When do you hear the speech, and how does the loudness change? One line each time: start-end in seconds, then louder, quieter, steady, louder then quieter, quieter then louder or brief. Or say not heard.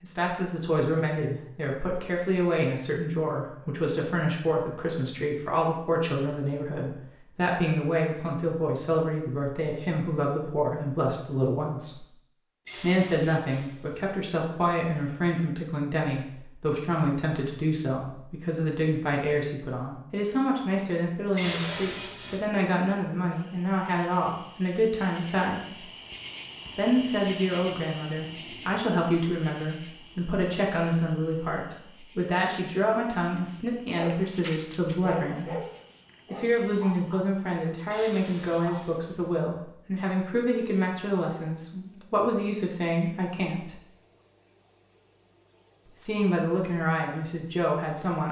0.0-12.1 steady
12.8-25.8 steady
26.8-35.5 steady
36.3-43.8 steady
46.0-48.2 brief.